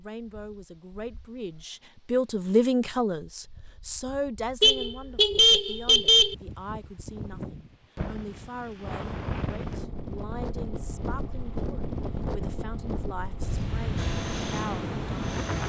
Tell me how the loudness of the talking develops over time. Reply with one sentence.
The loudness of the talking goes down.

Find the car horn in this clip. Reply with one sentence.
You can hear the car horn from 4.6 to 6.3 s.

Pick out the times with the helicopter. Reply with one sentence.
The helicopter can be heard from 13.9 to 15.6 s.